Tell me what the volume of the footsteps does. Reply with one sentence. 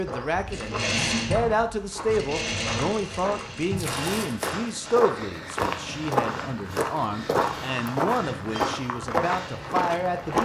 The loudness of the footsteps goes up.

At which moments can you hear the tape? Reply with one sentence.
You can hear the tape from 3.8 to 4.5 s.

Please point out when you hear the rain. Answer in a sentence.
The rain can't be heard in this clip.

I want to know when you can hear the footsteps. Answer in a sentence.
You can hear the footsteps from 0.0 to 10.4 s.